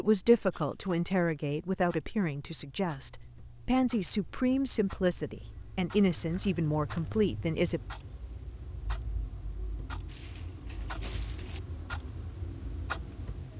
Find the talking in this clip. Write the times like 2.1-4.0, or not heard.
0.0-7.8.